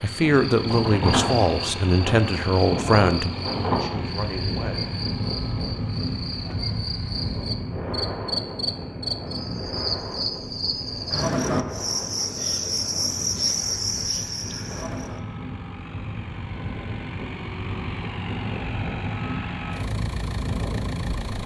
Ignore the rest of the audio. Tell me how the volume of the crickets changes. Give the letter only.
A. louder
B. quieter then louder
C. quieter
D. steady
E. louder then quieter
A.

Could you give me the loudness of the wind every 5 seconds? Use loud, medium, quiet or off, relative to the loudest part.
loud, loud, medium, medium, loud.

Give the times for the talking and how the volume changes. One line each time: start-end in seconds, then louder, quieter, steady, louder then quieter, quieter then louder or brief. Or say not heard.
0.0-4.9 quieter.